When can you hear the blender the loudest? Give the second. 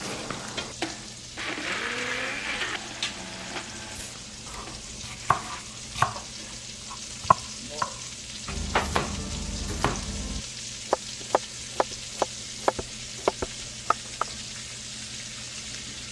2 s.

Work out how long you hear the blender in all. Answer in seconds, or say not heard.
6 s.